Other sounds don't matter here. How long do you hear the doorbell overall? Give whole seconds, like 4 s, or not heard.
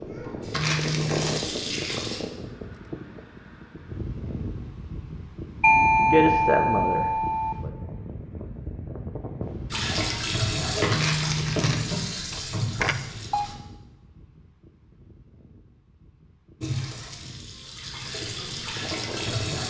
3 s.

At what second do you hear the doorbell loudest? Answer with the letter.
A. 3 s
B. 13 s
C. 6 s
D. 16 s
C.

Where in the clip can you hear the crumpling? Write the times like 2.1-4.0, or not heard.
0.5-1.4, 10.9-11.8.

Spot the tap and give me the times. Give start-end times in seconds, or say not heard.
0.0-2.2, 9.7-13.6, 16.6-19.6.